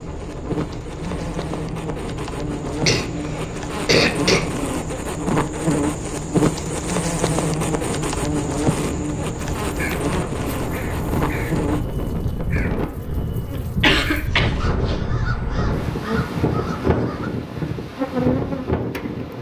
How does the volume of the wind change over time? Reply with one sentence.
The volume of the wind goes up.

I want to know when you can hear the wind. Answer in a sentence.
The wind can be heard from 0.0 to 19.3 s.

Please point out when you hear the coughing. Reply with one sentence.
The coughing can be heard from 2.9 to 4.5 s and from 13.8 to 15.0 s.